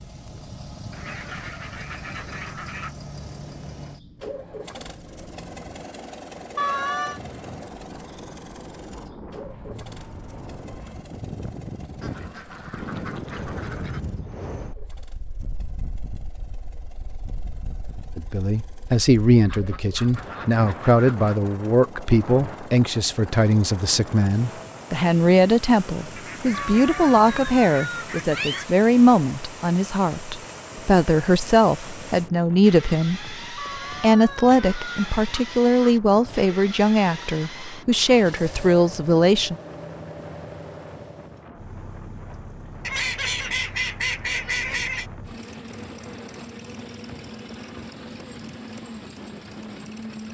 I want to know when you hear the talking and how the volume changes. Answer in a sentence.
You can hear the talking from 18.1 to 33.4 s, at a steady volume; and from 34.0 to 39.5 s, at a steady volume.